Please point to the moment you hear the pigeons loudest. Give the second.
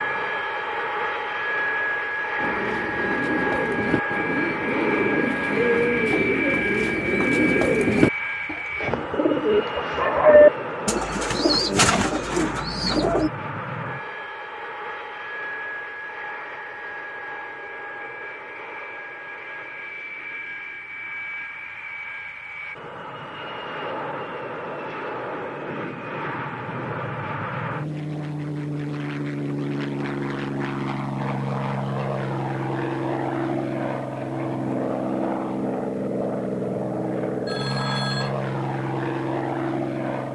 10 s.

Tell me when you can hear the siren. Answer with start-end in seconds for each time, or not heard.
not heard.